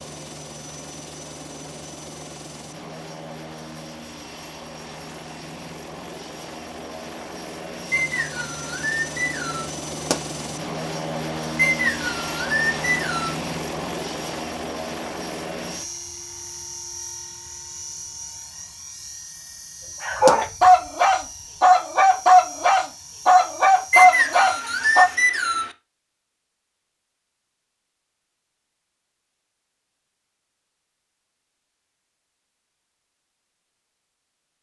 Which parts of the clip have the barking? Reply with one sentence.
The barking can be heard from 20.0 to 25.1 s.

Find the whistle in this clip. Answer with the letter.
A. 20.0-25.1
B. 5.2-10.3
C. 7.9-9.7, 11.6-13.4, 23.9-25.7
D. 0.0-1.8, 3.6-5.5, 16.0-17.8
C.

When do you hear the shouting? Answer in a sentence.
You can't hear the shouting here.